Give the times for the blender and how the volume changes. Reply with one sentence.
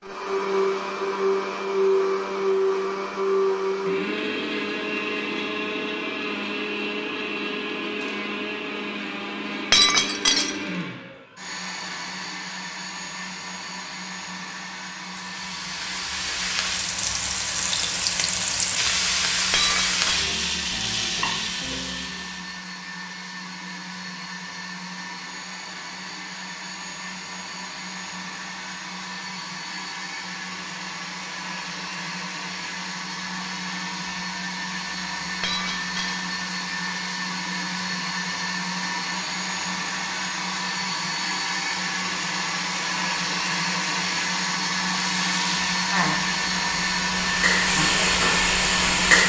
The blender can be heard from 0.0 to 49.2 s, getting quieter then louder.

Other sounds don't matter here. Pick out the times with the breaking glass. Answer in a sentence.
The breaking glass can be heard from 9.7 to 10.5 s, from 19.5 to 20.4 s and from 35.4 to 36.2 s.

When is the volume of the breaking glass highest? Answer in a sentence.
The loudest moment of the breaking glass is at 10 seconds.